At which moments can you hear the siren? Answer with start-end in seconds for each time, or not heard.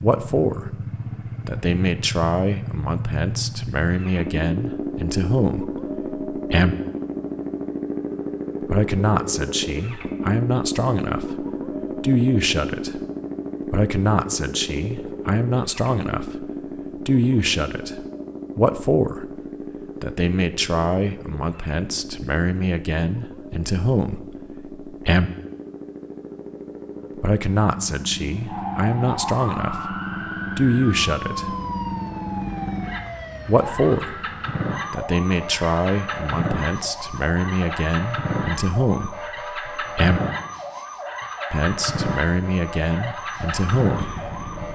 28.4-44.7.